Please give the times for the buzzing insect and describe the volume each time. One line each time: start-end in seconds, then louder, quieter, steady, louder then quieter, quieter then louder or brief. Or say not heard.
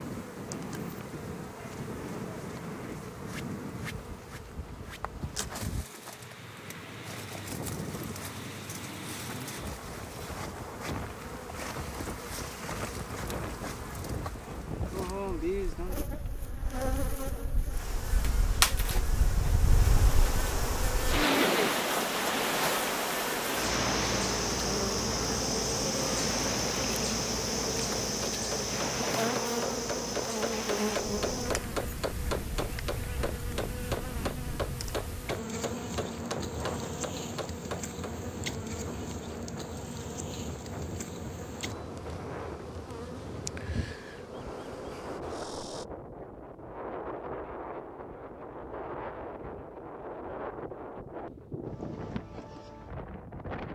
0.0-45.9 louder then quieter.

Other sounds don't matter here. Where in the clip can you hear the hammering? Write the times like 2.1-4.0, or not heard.
27.7-38.1.